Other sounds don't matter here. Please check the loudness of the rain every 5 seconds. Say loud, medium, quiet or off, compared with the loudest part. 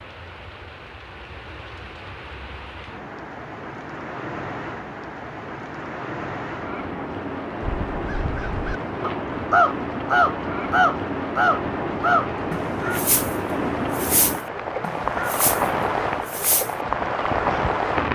quiet, medium, loud, loud.